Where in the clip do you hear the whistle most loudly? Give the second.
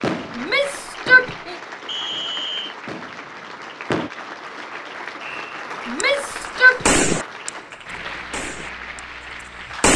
2 s.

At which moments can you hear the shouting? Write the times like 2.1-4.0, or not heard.
0.3-1.6, 5.8-6.8.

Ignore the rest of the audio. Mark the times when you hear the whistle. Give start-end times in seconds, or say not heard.
1.9-2.8, 5.2-5.8.